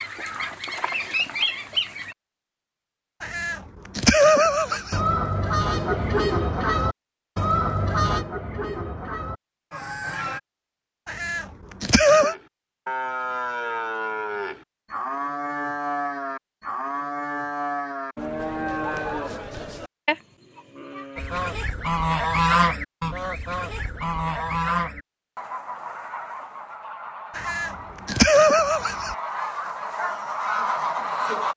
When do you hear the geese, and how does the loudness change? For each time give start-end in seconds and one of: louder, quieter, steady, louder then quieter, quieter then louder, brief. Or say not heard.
0.0-2.1 brief
4.7-10.4 quieter
21.1-31.5 quieter then louder.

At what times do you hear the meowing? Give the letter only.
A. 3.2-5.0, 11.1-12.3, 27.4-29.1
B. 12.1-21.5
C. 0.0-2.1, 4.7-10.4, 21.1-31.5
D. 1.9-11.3
A.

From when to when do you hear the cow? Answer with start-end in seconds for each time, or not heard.
12.1-21.5.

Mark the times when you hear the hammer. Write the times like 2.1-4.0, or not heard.
not heard.